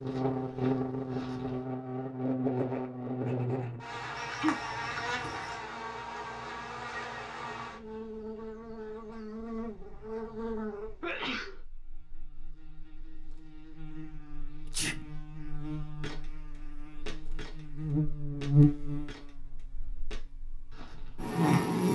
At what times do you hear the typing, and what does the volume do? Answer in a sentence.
You can't hear the typing here.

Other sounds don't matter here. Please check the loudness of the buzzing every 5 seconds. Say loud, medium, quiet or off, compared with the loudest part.
loud, medium, quiet, loud, loud.